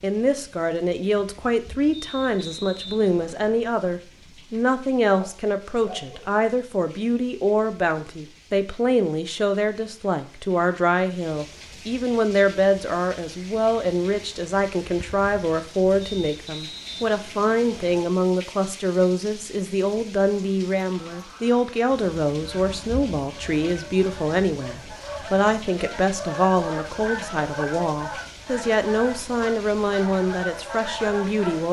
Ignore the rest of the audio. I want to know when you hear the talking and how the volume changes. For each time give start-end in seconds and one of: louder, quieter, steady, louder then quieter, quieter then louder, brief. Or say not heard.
0.0-31.6 steady.